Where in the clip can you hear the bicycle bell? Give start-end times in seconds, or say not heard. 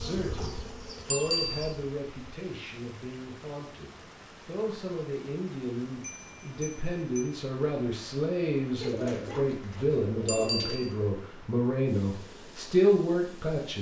1.1-1.7, 6.0-7.3, 10.2-10.9.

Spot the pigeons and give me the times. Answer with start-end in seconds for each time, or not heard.
8.8-10.9.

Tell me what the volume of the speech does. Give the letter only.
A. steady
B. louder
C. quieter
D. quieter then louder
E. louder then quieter
B.